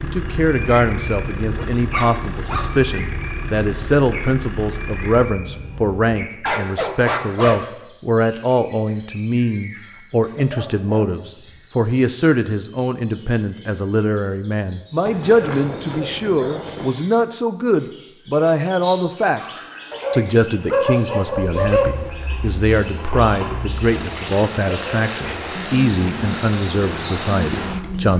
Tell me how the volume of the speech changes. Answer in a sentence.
The volume of the speech stays about the same.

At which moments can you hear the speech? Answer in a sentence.
The speech can be heard from 0.0 to 28.1 s.